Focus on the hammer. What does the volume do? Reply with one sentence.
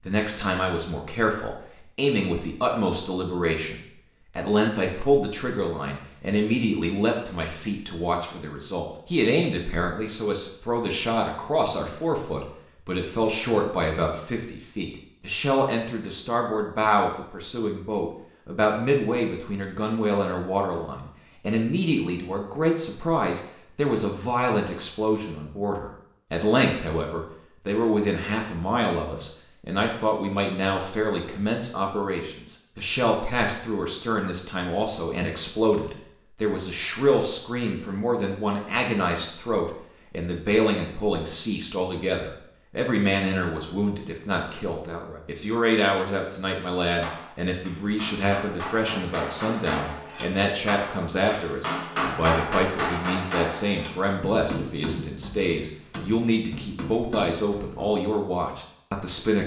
The loudness of the hammer goes up, then down.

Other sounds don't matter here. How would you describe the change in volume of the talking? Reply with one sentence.
The volume of the talking stays about the same.